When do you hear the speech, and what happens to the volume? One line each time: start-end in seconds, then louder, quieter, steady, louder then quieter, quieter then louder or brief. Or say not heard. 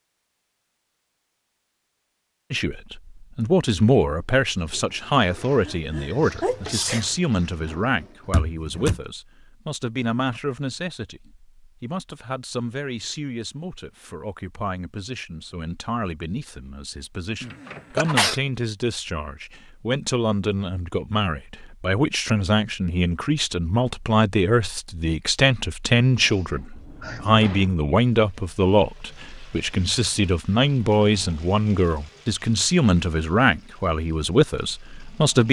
2.5-35.4 quieter then louder.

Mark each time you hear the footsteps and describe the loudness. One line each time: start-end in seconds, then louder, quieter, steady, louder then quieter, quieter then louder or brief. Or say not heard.
not heard.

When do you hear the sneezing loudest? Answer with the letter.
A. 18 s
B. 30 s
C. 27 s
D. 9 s
A.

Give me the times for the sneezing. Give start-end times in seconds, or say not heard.
5.6-7.1, 17.4-18.4, 26.1-27.3.